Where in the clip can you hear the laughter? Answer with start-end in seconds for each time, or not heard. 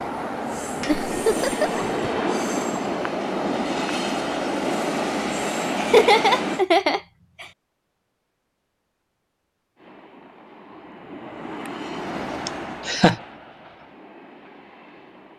0.8-1.9, 5.8-7.5, 12.4-13.2.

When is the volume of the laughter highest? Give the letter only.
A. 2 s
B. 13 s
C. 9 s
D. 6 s
D.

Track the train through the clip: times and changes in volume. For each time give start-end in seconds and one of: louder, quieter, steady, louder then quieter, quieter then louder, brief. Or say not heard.
0.0-6.7 steady
9.8-15.3 louder then quieter.